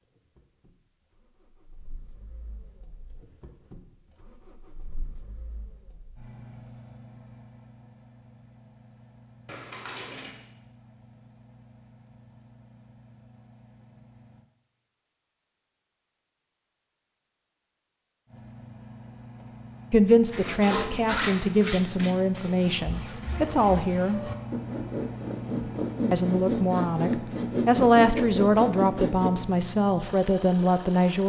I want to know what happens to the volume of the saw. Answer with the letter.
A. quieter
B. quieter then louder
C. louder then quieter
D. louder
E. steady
B.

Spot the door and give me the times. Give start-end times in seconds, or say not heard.
9.4-10.3.